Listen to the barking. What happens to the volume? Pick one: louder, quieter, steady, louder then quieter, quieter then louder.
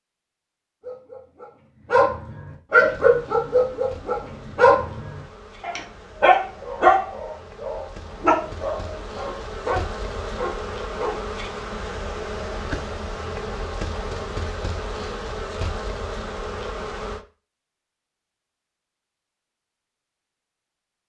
quieter.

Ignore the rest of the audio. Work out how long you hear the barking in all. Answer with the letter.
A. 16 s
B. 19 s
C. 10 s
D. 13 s
C.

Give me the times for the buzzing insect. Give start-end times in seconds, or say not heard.
2.8-17.2.